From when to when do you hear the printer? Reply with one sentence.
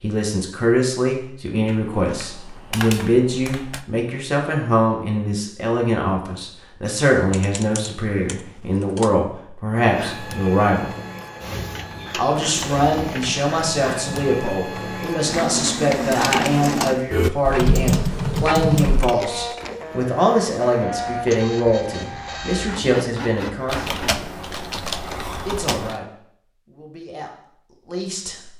You can hear the printer from 9.8 to 24.2 s.